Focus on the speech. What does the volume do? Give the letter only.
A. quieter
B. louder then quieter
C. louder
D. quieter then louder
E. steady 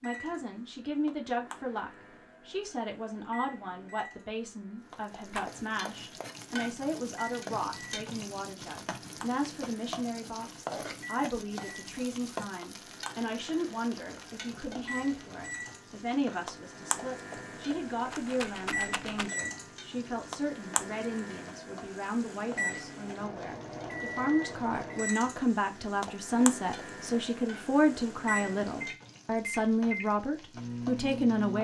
C.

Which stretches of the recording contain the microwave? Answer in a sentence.
The microwave can be heard from 0.0 to 31.6 s.